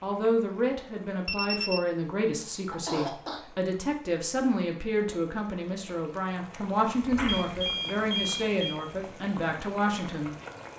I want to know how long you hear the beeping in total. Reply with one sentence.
You can hear the beeping for 2 seconds altogether.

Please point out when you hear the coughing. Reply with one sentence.
You can hear the coughing from 2.2 to 3.4 s and from 7.1 to 7.5 s.